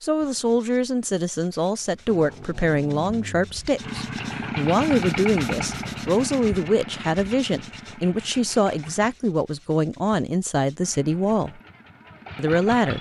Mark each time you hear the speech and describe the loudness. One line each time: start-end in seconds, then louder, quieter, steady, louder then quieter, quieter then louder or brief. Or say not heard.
0.0-11.6 steady
12.3-12.9 brief.